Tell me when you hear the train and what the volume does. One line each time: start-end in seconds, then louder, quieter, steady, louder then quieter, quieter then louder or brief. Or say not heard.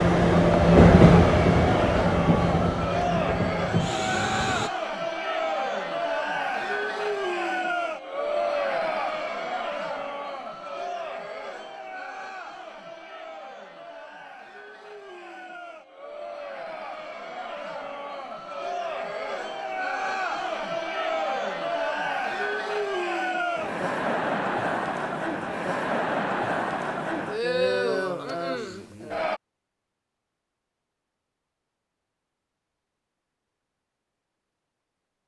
0.0-4.7 quieter.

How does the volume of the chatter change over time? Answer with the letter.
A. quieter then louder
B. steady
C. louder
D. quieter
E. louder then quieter
A.